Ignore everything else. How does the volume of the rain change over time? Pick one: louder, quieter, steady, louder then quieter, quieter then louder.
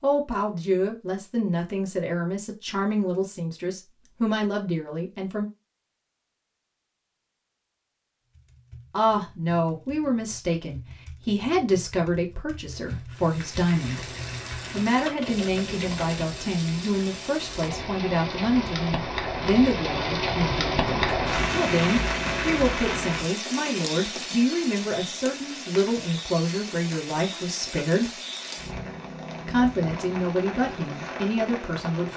louder then quieter.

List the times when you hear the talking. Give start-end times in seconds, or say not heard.
0.0-5.5, 8.9-14.1, 14.7-28.1, 29.4-32.1.